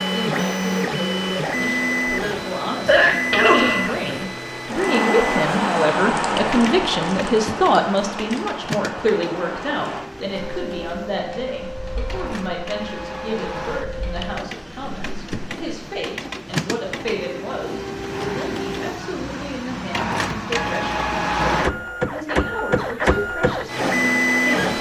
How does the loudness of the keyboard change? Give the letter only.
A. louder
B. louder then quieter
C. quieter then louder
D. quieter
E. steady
D.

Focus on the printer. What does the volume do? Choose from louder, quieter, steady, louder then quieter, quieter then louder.
quieter then louder.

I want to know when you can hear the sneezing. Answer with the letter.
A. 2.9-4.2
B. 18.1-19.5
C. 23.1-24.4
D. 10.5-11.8
A.